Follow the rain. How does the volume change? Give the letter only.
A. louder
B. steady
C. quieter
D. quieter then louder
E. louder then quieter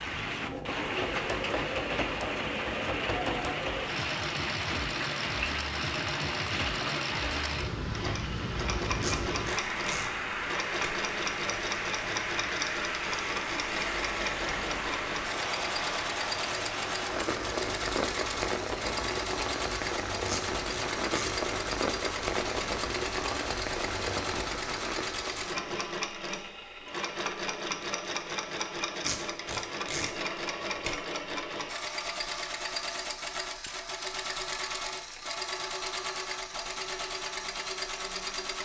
B.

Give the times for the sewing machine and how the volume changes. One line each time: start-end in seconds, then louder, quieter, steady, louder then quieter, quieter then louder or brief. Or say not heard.
0.0-38.5 steady.